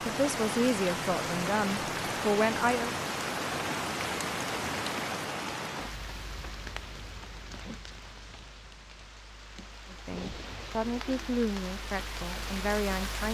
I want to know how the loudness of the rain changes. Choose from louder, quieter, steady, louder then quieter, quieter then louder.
quieter then louder.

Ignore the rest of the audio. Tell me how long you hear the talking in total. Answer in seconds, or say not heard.
6 s.